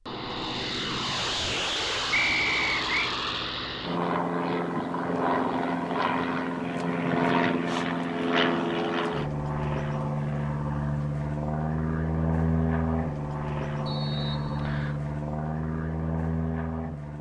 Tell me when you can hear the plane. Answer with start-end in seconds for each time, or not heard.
0.1-17.1.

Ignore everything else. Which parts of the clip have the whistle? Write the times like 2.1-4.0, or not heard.
2.1-3.1, 13.8-14.9.